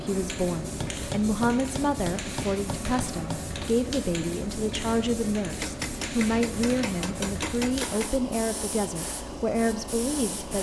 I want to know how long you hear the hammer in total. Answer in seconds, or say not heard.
5 s.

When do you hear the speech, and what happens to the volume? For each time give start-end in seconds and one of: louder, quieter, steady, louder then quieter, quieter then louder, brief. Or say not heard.
0.0-10.5 steady.